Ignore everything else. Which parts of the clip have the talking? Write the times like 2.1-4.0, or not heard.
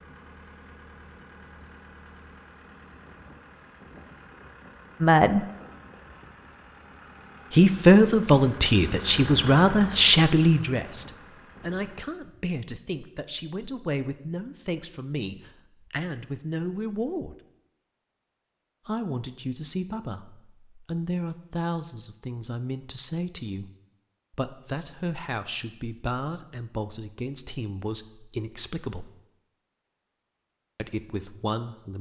5.0-5.5, 7.5-17.4, 18.9-23.7, 24.3-29.1, 30.8-31.9.